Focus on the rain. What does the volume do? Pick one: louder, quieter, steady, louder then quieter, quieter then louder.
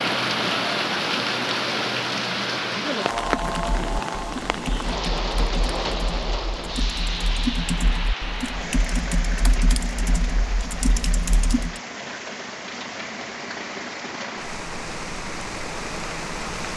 quieter.